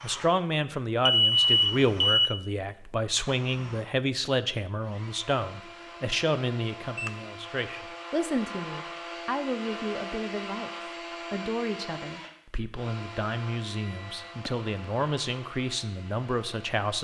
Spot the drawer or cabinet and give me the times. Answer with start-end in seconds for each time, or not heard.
not heard.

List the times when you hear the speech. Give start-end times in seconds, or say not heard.
0.0-16.9.